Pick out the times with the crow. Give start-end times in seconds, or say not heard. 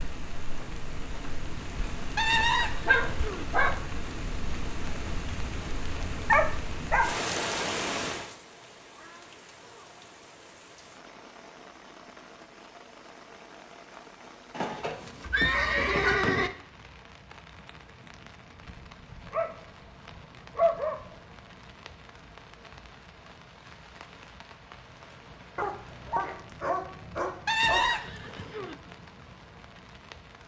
not heard.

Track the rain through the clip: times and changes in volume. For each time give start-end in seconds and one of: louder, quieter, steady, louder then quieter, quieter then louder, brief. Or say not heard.
0.0-30.4 quieter.